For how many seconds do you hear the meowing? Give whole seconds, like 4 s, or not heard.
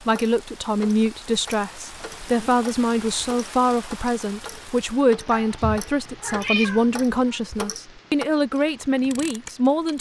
3 s.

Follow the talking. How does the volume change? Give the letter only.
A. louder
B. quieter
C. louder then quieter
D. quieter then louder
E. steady
E.